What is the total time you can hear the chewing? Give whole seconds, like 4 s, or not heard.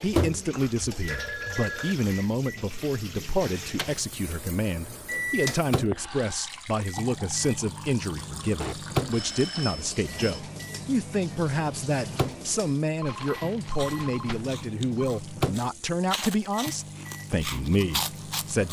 5 s.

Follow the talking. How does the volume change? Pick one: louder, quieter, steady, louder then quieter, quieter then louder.
steady.